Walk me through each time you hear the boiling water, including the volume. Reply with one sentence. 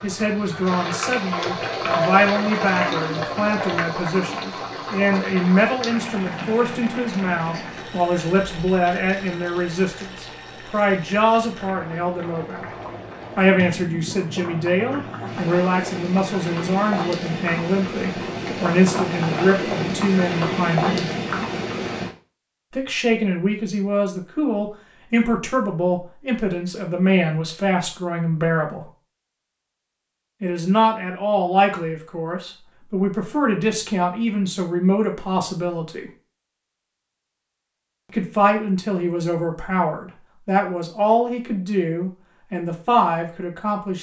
The boiling water can be heard from 0.0 to 22.1 s, getting quieter then louder.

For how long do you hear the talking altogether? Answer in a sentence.
You can hear the talking for 38 seconds altogether.